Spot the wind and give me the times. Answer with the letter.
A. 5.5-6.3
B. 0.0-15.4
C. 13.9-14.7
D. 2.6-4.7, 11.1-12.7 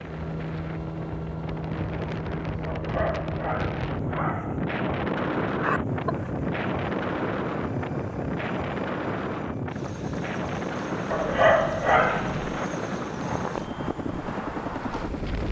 B.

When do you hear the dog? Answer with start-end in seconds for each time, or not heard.
2.6-4.7, 11.1-12.7.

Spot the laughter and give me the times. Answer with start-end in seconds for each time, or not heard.
5.5-6.3.